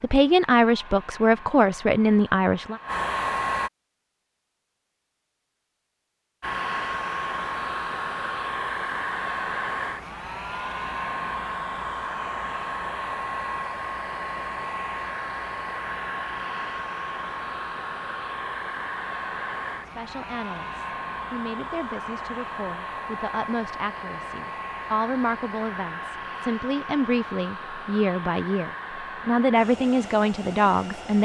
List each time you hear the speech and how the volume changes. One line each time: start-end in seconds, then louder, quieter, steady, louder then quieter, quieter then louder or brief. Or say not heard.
0.0-2.8 brief
19.9-31.2 louder.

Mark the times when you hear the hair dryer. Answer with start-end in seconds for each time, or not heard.
0.0-3.7, 6.4-31.2.